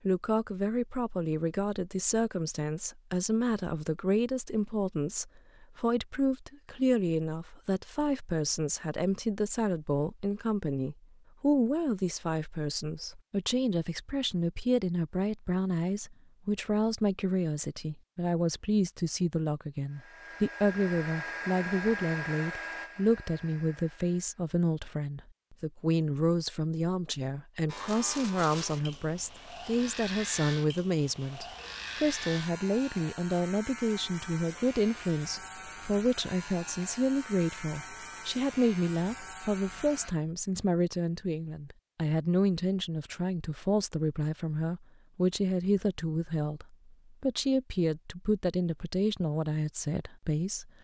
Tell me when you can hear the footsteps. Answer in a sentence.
You can't hear the footsteps here.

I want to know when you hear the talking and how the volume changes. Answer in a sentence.
You can hear the talking from 0.1 to 50.7 s, at a steady volume.